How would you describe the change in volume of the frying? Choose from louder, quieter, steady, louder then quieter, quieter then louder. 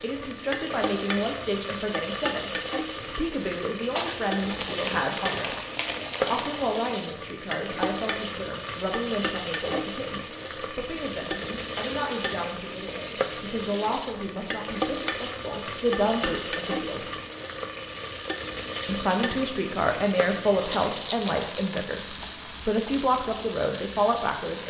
steady.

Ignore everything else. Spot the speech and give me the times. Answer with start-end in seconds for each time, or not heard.
0.0-5.5, 6.2-17.1, 18.9-24.6.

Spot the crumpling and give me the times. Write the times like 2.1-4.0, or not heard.
4.0-6.6, 20.6-21.9.